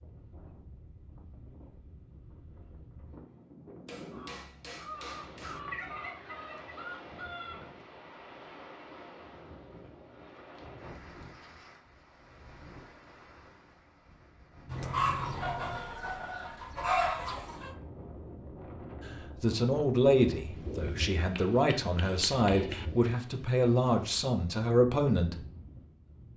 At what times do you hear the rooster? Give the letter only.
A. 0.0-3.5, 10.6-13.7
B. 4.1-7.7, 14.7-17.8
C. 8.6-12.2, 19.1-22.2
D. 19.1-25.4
B.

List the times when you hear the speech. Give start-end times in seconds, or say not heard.
19.1-25.4.